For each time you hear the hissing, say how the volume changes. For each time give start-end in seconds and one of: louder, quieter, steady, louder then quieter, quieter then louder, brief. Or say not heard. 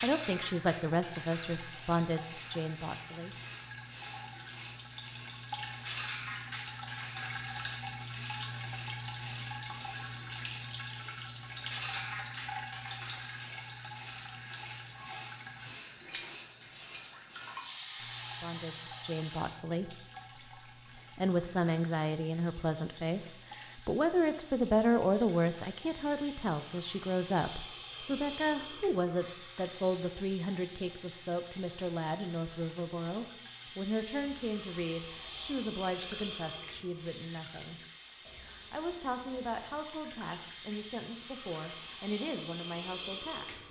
0.0-43.6 louder.